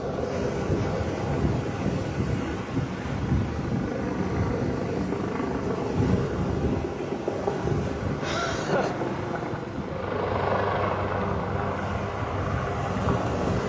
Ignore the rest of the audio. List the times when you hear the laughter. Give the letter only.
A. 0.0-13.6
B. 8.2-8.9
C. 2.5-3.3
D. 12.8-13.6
B.